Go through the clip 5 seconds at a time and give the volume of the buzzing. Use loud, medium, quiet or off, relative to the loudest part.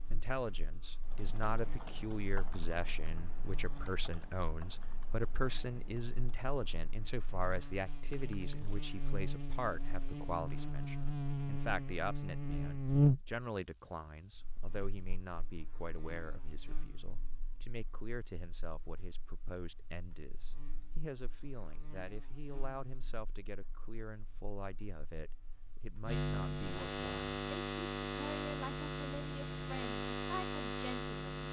quiet, quiet, loud, quiet, quiet, loud, loud.